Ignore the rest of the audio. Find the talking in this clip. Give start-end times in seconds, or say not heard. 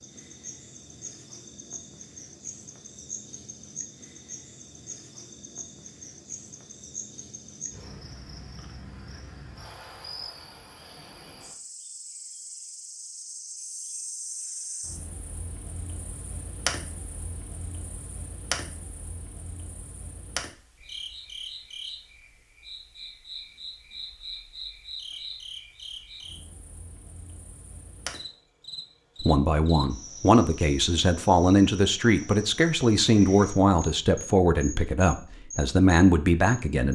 29.2-36.9.